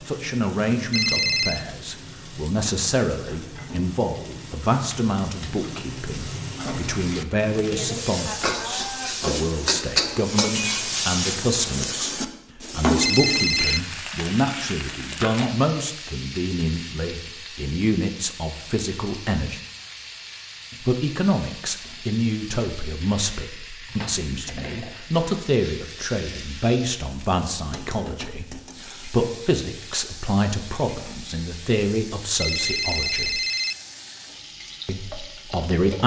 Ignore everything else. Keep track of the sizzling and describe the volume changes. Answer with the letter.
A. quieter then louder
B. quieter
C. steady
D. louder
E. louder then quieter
E.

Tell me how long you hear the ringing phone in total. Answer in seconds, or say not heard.
3 s.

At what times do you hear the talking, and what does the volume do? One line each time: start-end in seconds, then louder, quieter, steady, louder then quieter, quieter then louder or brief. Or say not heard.
0.1-19.6 steady
20.8-33.4 steady
34.9-36.0 brief.